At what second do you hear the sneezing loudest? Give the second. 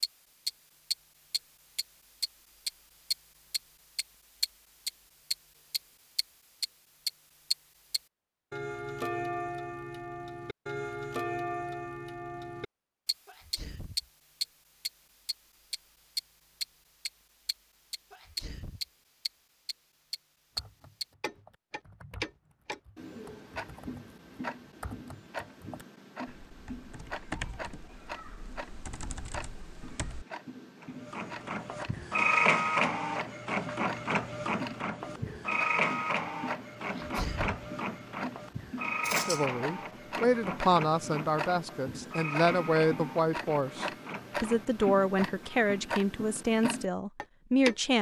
37 s.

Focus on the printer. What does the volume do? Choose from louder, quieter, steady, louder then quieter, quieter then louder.
quieter.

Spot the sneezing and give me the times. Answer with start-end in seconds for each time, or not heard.
13.2-14.1, 18.1-18.8, 36.9-37.6.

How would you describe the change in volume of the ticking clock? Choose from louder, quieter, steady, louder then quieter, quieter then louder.
quieter then louder.